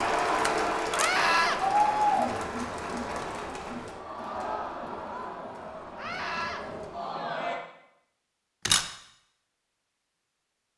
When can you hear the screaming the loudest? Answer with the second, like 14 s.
1 s.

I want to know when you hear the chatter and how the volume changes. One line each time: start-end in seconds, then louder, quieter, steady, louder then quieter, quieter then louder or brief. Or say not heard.
0.0-7.5 quieter.